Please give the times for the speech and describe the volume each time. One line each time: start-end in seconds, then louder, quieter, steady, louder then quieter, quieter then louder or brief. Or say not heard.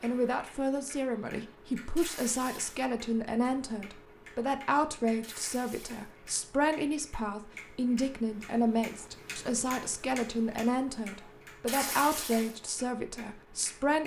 0.0-14.0 steady.